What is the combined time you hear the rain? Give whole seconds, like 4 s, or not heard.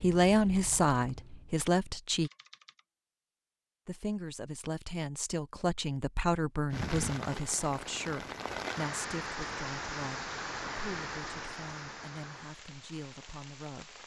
7 s.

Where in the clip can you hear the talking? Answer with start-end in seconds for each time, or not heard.
0.0-2.3, 3.9-13.9.